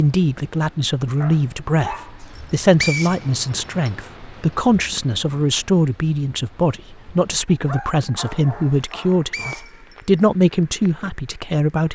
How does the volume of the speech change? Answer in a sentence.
The loudness of the speech stays about the same.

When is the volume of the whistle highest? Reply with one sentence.
The loudest moment of the whistle is at 3 seconds.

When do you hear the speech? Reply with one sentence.
The speech can be heard from 0.0 to 11.8 s.